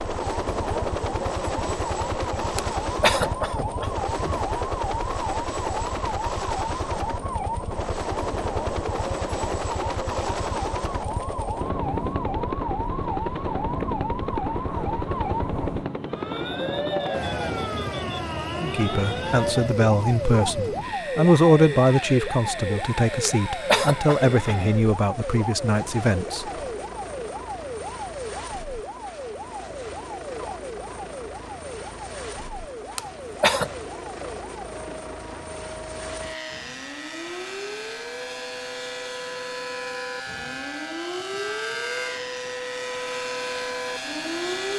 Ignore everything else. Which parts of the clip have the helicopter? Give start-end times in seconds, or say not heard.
0.0-44.7.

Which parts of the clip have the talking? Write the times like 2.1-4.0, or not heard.
18.6-26.5.